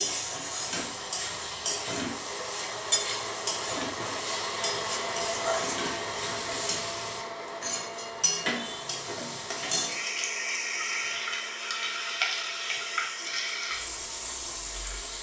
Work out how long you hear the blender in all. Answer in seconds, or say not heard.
15 s.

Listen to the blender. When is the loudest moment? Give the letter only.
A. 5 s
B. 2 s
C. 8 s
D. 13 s
A.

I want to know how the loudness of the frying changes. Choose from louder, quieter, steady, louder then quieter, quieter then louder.
steady.